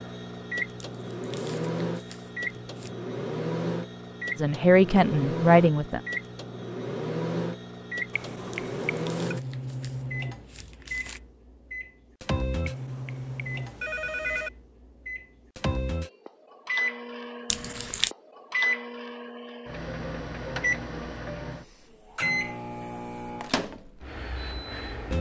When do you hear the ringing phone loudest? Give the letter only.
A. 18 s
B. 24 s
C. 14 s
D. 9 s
C.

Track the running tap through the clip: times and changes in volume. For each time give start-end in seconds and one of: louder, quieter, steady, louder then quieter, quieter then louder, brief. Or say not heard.
not heard.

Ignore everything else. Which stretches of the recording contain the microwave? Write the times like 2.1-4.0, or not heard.
0.0-25.1.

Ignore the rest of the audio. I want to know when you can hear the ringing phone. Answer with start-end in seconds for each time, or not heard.
8.1-9.2, 12.7-14.5.